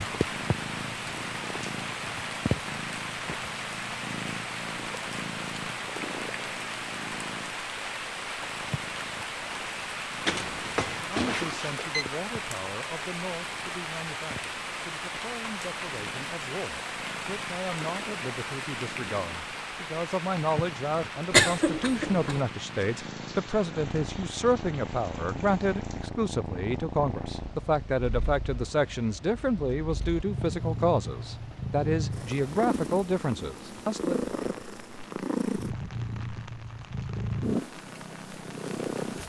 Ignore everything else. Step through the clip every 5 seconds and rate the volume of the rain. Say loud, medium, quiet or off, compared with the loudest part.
loud, loud, loud, loud, medium, quiet, quiet, quiet.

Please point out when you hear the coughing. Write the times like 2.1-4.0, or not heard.
21.3-22.4.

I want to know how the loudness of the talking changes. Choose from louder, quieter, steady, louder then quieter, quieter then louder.
louder.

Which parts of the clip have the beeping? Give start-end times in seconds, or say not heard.
10.2-12.1.